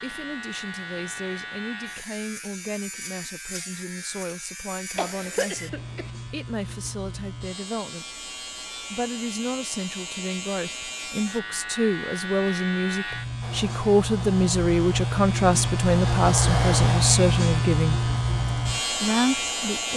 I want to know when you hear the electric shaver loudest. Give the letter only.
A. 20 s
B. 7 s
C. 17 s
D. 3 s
C.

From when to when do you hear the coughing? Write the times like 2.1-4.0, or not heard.
5.0-6.1.